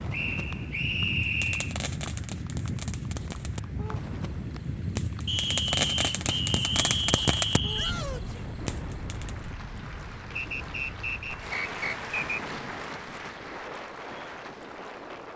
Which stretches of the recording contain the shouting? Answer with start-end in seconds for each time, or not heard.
7.8-8.4.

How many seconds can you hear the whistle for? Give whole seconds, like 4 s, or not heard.
6 s.